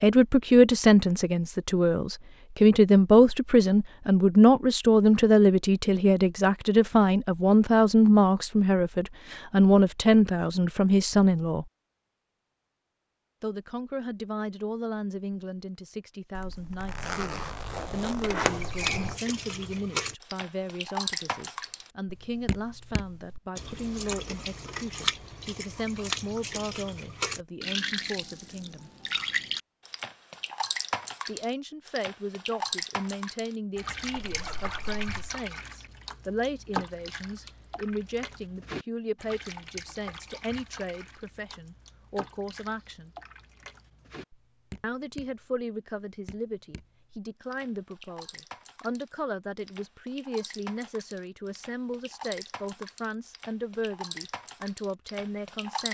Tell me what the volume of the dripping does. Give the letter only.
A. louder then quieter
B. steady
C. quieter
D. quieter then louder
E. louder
D.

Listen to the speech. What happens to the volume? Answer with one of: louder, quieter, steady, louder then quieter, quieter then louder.
quieter.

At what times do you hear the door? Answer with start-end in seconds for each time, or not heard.
18.2-19.2.